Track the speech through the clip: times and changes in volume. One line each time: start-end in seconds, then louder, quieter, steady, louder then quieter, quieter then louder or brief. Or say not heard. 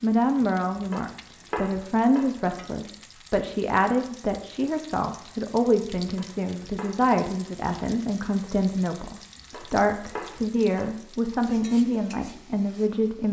0.0-13.2 steady.